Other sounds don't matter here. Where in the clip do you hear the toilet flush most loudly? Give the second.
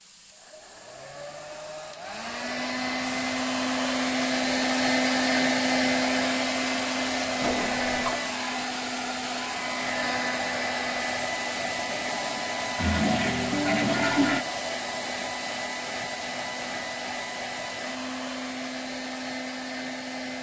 14 s.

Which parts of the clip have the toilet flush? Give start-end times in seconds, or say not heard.
7.4-8.2, 12.8-14.4.